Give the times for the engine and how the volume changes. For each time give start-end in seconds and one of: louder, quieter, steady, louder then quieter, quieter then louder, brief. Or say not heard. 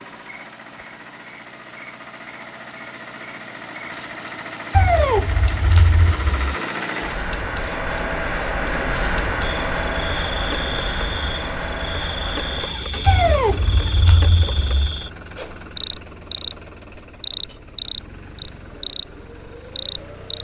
0.0-20.3 louder then quieter.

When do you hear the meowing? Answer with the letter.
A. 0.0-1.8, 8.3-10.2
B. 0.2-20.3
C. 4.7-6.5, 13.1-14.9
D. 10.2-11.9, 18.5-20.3
C.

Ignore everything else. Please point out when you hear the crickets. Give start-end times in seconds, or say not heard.
0.2-20.3.